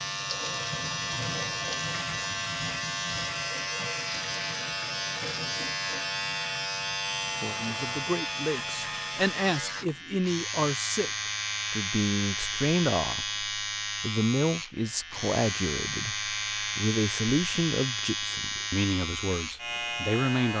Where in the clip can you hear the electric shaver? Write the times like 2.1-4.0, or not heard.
0.0-20.5.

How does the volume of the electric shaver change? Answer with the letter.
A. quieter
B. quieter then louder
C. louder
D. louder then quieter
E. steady
E.